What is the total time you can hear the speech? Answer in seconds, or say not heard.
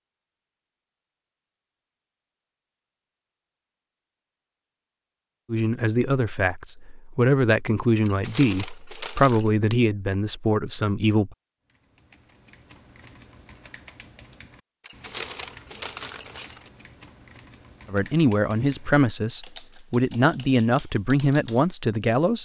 10 s.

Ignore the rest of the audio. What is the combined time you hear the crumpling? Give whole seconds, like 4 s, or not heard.
3 s.